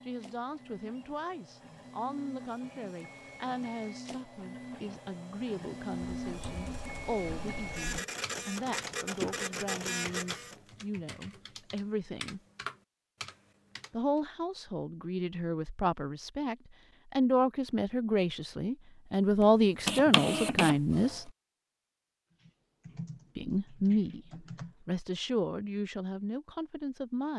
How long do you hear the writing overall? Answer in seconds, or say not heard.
not heard.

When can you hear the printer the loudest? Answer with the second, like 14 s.
20 s.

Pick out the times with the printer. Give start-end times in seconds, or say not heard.
0.0-10.6, 19.4-21.2.